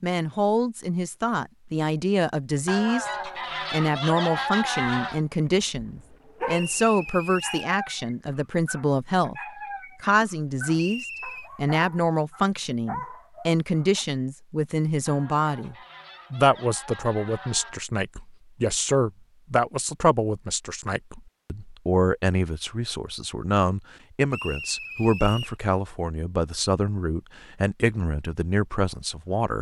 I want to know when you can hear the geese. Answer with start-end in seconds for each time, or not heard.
2.6-5.2, 15.1-17.9.